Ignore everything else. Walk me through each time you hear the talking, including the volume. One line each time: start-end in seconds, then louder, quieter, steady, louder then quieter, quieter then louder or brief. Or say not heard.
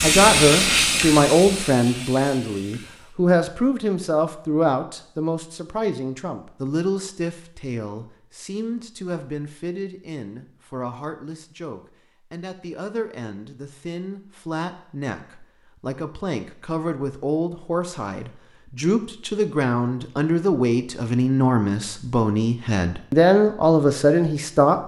0.0-24.8 quieter then louder.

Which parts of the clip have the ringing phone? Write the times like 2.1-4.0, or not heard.
not heard.